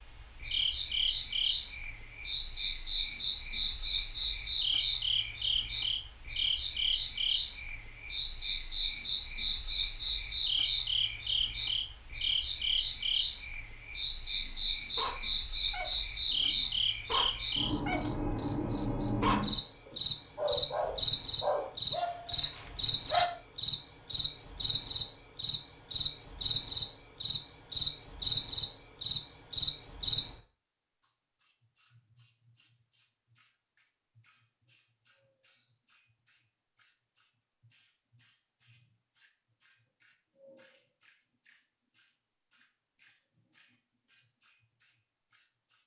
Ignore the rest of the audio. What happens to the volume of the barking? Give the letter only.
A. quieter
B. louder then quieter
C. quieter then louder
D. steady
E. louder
E.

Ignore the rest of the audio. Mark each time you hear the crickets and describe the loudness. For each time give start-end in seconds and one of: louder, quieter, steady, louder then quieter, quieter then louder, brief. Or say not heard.
0.0-45.8 steady.